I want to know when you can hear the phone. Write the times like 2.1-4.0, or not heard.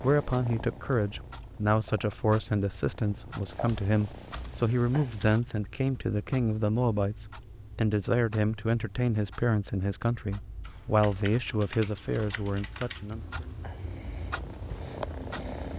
not heard.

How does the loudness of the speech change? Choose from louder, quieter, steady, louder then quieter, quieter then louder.
steady.